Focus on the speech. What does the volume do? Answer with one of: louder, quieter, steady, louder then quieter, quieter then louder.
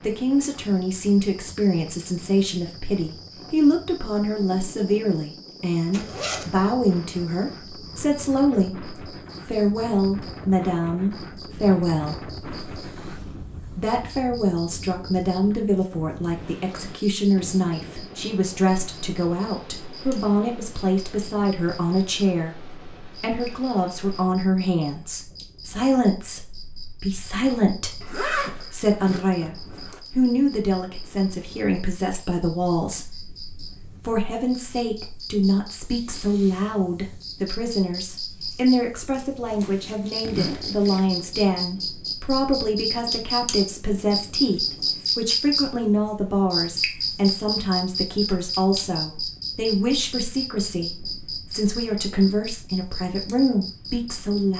steady.